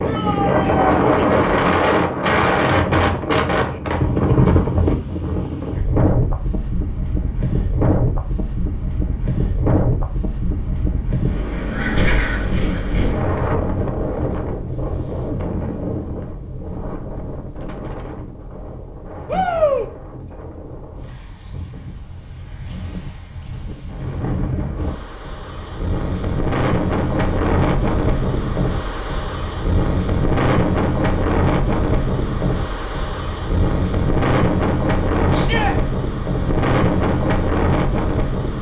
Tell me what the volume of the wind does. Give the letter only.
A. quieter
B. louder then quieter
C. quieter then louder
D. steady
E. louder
C.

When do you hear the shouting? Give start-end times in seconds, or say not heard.
0.1-1.0, 19.2-19.9, 35.3-35.8.